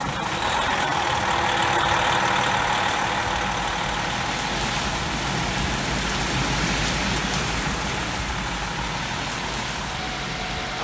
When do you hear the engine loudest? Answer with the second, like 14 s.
2 s.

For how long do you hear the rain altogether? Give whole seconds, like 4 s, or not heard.
11 s.